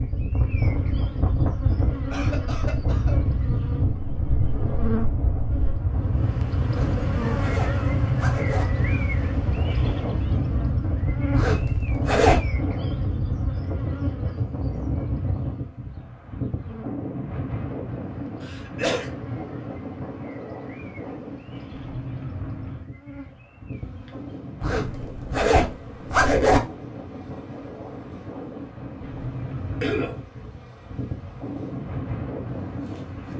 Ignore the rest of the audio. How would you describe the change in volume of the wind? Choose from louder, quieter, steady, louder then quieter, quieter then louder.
quieter.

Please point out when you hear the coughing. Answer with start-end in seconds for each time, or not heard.
2.1-3.1, 18.4-19.1, 29.8-30.5.